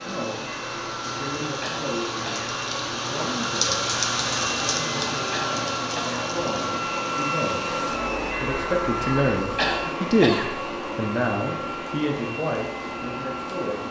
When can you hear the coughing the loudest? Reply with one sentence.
The loudest moment of the coughing is at 10 seconds.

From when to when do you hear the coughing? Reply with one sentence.
You can hear the coughing from 1.6 to 2.5 s, from 5.3 to 6.2 s and from 9.6 to 10.5 s.